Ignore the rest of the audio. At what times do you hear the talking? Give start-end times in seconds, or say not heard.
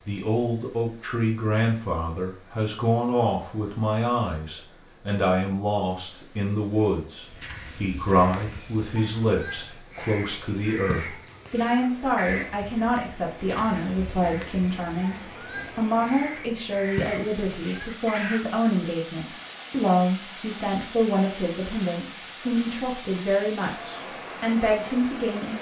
0.1-25.5.